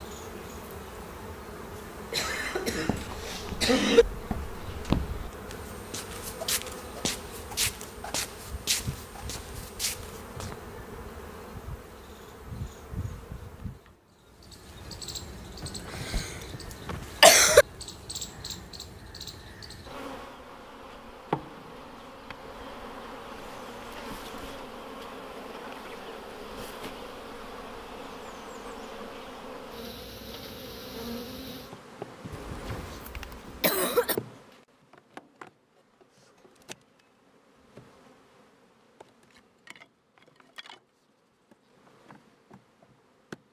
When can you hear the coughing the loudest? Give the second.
17 s.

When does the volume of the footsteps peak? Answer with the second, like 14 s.
5 s.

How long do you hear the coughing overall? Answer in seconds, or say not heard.
6 s.